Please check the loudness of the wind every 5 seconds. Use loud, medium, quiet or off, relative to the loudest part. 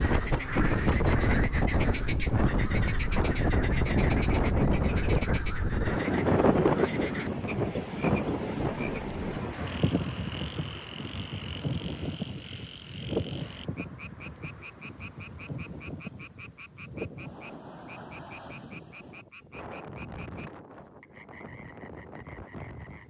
loud, loud, medium, quiet, quiet.